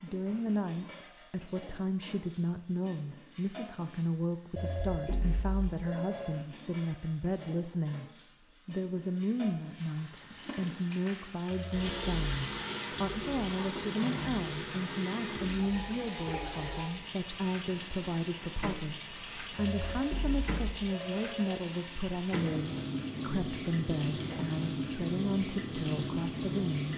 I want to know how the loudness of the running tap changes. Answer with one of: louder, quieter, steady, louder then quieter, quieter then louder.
louder.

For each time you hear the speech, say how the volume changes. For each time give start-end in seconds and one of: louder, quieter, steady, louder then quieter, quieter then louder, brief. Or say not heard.
0.0-8.1 steady
8.7-26.9 steady.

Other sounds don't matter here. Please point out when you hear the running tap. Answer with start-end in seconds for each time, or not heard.
0.0-26.9.